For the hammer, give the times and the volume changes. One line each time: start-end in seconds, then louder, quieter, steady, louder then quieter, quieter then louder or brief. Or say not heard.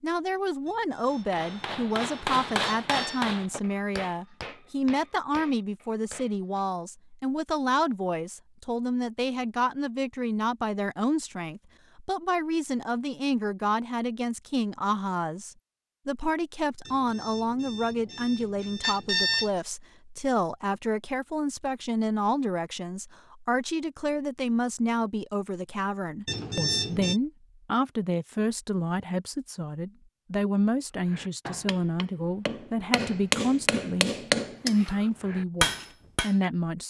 1.1-6.7 quieter
31.1-36.4 louder.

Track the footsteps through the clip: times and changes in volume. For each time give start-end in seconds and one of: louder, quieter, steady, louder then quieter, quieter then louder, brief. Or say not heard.
not heard.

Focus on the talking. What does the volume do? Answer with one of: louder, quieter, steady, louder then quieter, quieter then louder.
steady.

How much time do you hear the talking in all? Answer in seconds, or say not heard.
37 s.